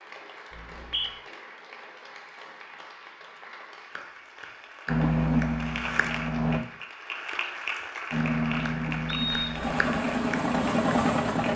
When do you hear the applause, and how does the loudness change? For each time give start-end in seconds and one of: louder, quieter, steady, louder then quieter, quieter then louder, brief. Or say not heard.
0.0-11.5 louder.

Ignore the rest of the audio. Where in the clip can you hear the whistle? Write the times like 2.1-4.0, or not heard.
0.5-1.1, 9.1-9.7.